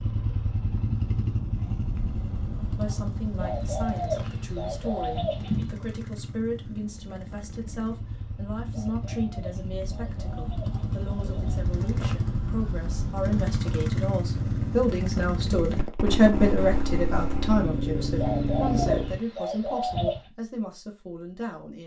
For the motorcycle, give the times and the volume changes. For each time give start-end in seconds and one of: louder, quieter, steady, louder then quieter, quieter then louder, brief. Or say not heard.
0.0-19.2 quieter then louder.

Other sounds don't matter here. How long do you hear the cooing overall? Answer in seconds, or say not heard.
7 s.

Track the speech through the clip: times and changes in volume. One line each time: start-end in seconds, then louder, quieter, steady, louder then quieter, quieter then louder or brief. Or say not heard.
2.8-21.8 louder then quieter.